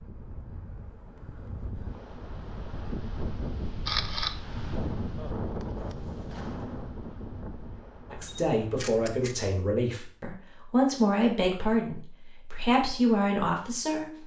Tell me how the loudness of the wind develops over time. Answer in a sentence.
The loudness of the wind goes up, then down.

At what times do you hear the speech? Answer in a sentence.
You can hear the speech from 8.1 to 14.2 s.